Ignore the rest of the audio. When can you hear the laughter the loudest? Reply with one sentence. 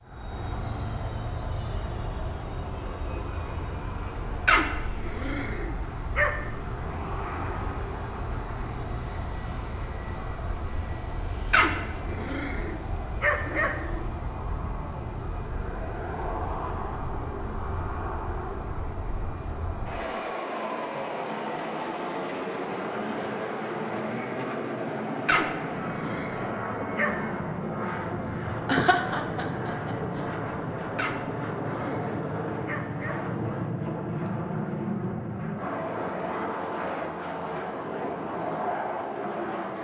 The loudest moment of the laughter is at 29 seconds.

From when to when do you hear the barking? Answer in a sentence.
You can hear the barking from 4.5 to 6.3 s, from 11.5 to 14.1 s, from 25.2 to 27.1 s and from 30.9 to 33.4 s.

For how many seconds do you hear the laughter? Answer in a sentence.
The laughter can be heard for 2 seconds in total.